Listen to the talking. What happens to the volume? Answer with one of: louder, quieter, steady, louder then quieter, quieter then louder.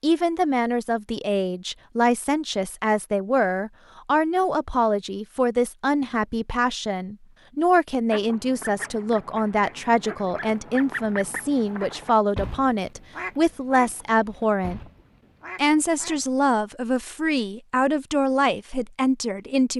steady.